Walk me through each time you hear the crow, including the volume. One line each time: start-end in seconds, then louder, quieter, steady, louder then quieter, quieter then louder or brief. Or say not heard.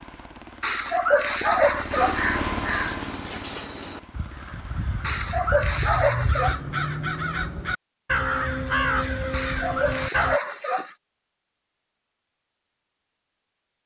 1.9-10.4 quieter then louder.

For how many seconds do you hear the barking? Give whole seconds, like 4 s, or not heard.
5 s.